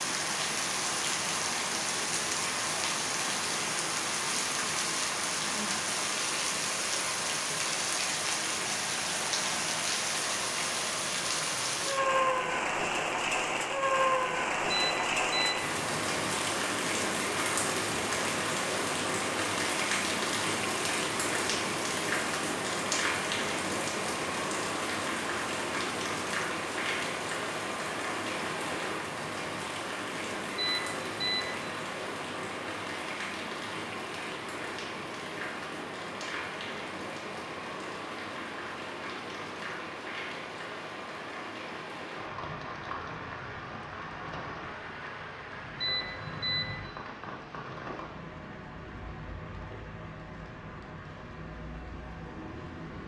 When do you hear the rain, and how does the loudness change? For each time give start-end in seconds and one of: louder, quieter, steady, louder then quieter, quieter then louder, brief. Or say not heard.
0.0-53.0 quieter.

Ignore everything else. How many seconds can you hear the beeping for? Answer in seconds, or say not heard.
3 s.